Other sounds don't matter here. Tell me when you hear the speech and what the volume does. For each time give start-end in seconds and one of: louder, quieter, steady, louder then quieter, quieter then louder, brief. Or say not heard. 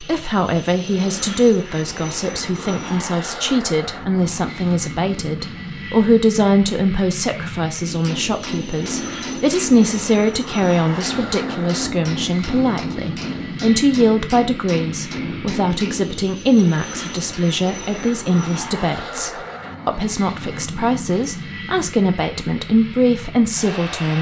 0.0-24.1 steady.